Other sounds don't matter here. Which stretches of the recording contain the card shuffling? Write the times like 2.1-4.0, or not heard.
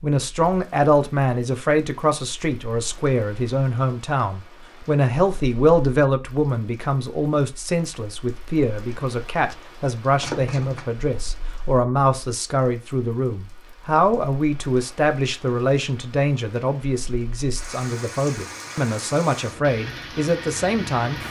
10.2-10.8.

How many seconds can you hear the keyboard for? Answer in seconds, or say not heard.
not heard.